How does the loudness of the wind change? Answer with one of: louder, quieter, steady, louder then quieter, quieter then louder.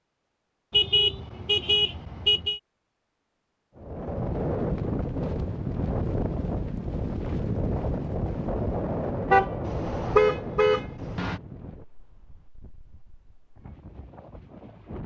quieter.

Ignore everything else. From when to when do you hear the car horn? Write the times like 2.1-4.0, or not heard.
0.7-2.6, 9.3-11.4.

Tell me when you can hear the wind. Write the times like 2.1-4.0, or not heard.
3.8-15.0.